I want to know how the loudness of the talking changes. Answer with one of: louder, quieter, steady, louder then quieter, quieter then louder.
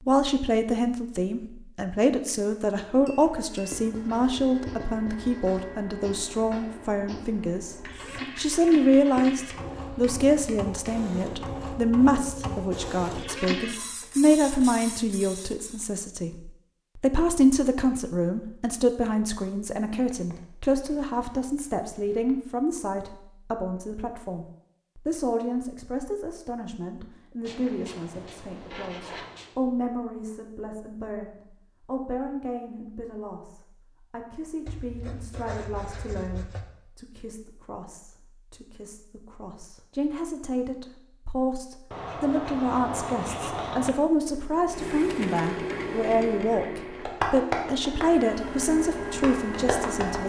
quieter then louder.